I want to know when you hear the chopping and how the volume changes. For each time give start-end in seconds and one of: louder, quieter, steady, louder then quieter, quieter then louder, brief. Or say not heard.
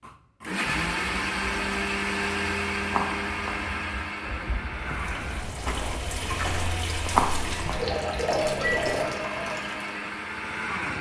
not heard.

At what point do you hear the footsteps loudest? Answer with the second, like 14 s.
7 s.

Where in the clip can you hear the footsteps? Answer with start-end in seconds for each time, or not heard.
0.7-9.1.